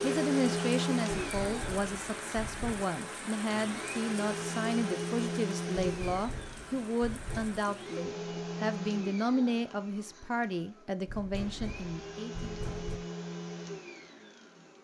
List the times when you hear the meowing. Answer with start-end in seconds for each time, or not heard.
not heard.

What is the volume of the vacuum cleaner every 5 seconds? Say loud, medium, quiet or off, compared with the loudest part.
loud, loud, medium.